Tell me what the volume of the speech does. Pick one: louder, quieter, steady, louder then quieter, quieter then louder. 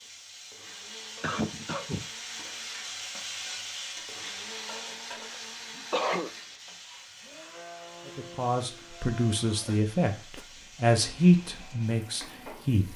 louder then quieter.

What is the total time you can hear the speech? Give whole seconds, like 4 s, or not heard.
5 s.